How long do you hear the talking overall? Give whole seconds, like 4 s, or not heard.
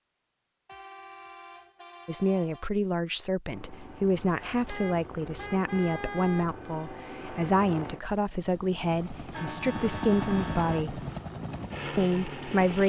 10 s.